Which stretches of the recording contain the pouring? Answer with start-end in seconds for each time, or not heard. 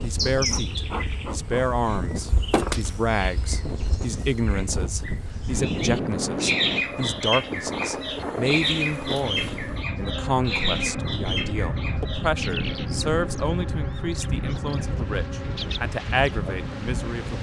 not heard.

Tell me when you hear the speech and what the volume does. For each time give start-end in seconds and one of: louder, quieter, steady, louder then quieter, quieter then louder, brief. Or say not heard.
0.0-17.3 steady.